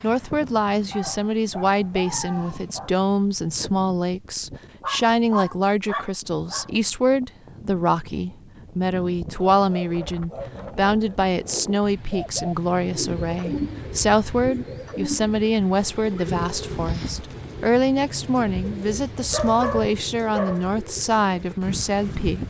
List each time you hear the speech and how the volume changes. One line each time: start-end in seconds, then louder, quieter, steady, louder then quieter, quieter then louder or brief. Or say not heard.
0.0-22.4 steady.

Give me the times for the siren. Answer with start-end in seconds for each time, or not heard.
not heard.